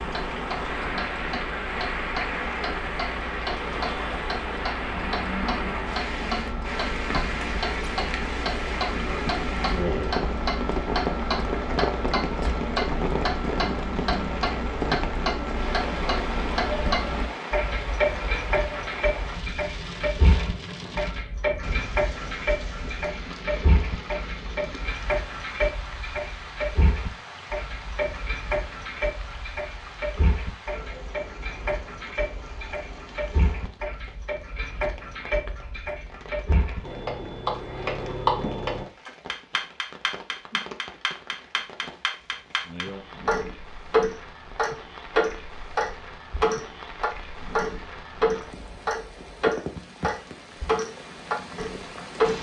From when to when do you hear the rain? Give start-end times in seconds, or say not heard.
0.0-52.3.